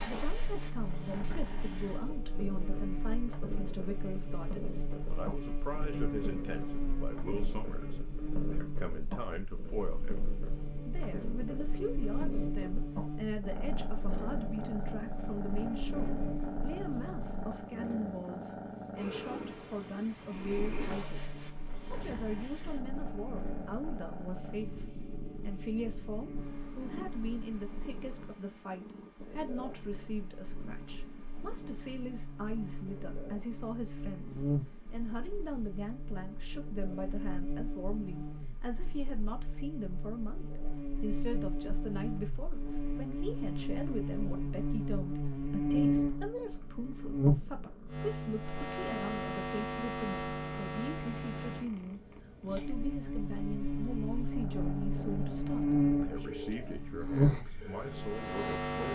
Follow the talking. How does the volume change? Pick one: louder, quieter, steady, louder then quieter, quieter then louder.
steady.